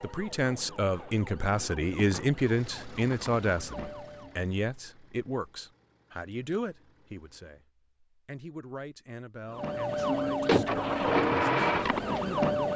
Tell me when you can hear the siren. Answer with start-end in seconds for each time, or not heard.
0.0-4.3, 9.6-12.7.